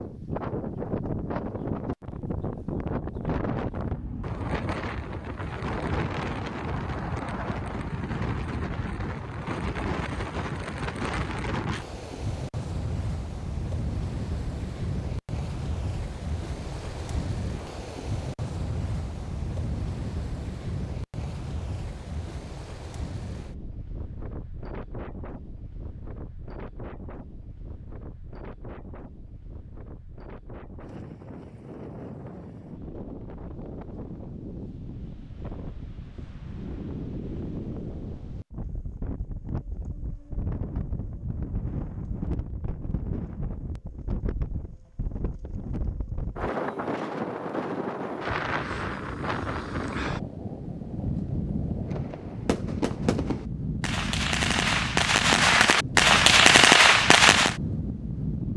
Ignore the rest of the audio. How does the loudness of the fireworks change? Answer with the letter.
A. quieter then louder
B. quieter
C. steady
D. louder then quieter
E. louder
E.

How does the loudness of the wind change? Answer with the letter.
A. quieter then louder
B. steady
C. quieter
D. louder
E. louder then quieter
A.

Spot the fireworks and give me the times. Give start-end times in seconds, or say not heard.
51.9-57.5.